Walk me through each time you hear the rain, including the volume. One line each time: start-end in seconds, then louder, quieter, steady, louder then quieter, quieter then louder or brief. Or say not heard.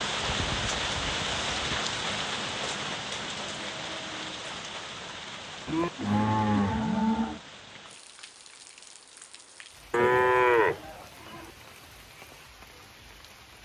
0.0-13.6 quieter.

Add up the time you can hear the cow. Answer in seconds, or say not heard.
5 s.